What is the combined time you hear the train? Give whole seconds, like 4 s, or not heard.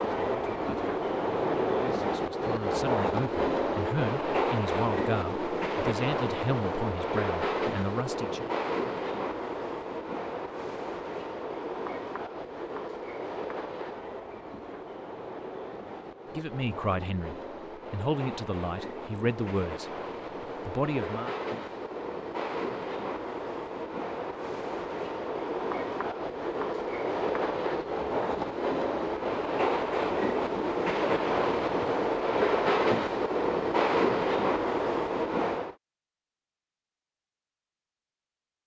36 s.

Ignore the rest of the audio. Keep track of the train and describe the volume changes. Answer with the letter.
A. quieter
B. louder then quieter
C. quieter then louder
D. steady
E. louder
C.